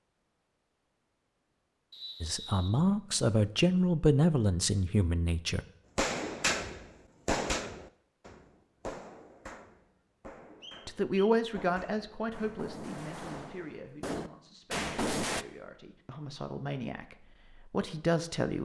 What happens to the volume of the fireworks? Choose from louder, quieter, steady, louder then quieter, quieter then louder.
quieter then louder.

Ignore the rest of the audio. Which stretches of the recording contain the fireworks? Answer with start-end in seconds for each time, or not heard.
6.0-15.4.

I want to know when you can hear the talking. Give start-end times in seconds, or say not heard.
2.2-5.6, 10.8-18.6.